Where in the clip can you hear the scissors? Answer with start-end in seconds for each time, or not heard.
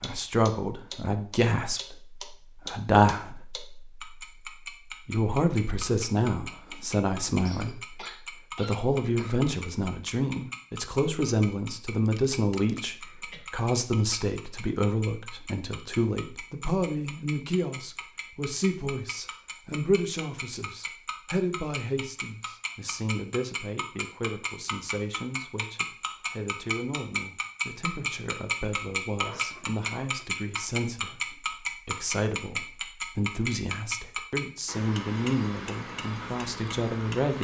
not heard.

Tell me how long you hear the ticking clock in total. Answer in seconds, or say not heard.
37 s.